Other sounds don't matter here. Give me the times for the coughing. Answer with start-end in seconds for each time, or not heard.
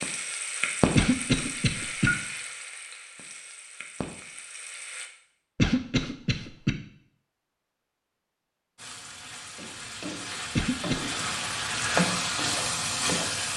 0.9-2.1, 5.5-6.8, 10.6-11.3.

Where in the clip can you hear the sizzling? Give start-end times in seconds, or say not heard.
0.0-5.1, 8.8-13.5.